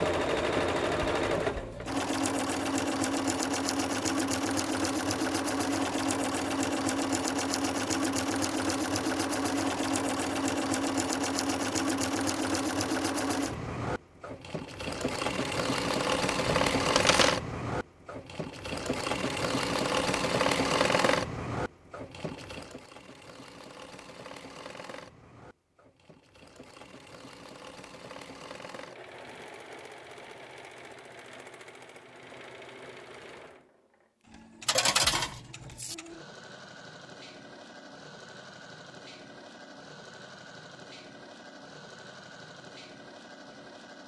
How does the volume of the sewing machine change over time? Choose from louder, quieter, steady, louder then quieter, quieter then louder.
quieter.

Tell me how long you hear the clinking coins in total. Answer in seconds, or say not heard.
2 s.